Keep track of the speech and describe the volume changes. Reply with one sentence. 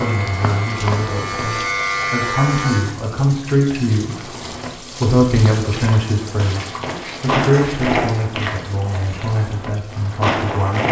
The loudness of the speech goes up, then down.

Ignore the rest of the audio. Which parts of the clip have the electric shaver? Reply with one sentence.
You can hear the electric shaver from 0.0 to 2.9 s.